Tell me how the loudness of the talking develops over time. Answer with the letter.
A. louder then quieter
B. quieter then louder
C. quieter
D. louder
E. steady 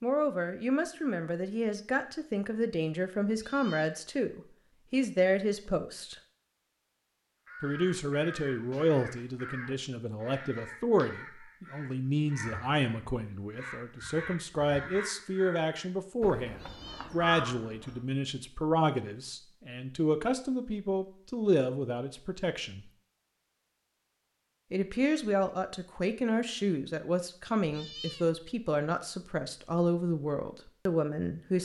E.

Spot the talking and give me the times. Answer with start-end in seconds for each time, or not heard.
0.0-6.2, 7.6-22.9, 24.7-31.6.